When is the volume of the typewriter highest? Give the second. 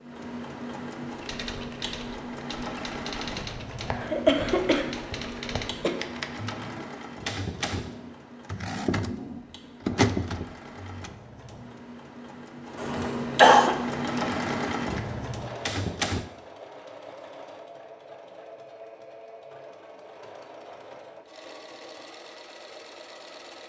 10 s.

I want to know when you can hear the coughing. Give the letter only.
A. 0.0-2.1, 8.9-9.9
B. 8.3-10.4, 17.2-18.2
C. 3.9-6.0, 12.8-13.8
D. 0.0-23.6
C.